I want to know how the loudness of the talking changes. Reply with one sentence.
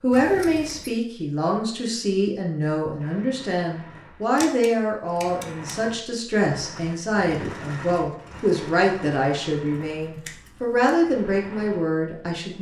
The loudness of the talking stays about the same.